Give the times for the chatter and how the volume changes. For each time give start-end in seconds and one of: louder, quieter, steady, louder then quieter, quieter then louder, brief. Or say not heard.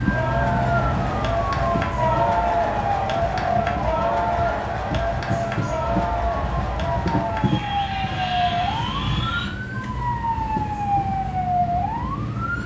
0.0-9.5 quieter.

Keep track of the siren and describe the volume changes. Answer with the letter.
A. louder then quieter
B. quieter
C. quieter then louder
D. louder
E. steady
C.